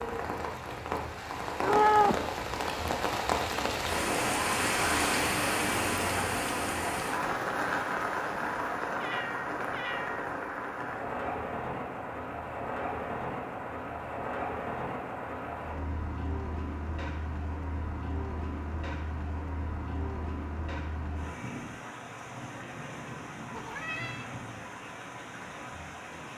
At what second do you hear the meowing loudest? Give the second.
2 s.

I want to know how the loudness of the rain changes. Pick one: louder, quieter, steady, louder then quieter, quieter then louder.
quieter.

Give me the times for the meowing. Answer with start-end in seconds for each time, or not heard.
1.6-2.2, 9.0-10.2, 23.5-24.2.